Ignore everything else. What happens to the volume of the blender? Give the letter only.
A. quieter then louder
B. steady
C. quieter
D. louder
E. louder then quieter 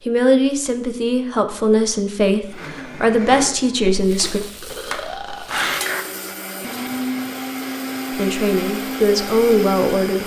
D.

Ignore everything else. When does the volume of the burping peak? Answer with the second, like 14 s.
6 s.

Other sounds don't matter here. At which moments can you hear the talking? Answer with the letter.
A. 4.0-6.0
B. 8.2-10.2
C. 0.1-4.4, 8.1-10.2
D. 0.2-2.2
C.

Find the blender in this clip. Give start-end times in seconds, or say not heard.
2.5-10.2.